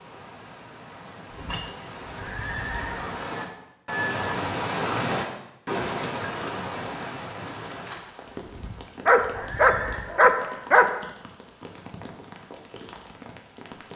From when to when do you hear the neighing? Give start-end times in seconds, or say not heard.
1.3-3.1, 8.4-10.2.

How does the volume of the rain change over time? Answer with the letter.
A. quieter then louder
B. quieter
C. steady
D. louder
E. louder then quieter
E.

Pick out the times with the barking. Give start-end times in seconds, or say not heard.
9.1-10.9.